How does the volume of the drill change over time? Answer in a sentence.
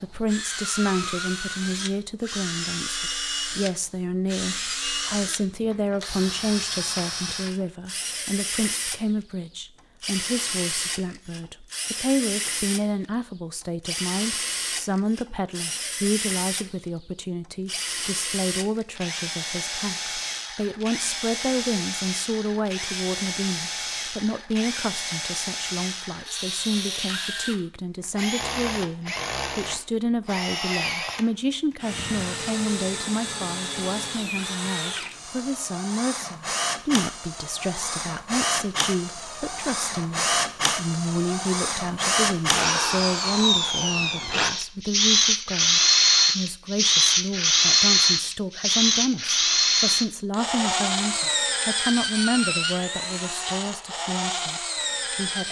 The loudness of the drill goes up.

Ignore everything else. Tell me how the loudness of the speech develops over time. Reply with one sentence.
The volume of the speech stays about the same.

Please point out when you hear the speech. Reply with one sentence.
The speech can be heard from 0.0 to 55.4 s.